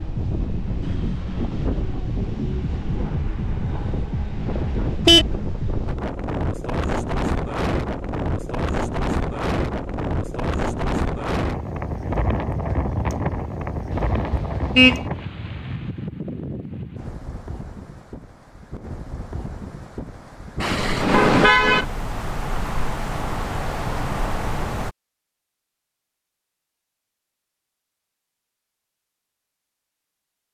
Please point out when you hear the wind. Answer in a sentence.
The wind can be heard from 0.0 to 24.9 s.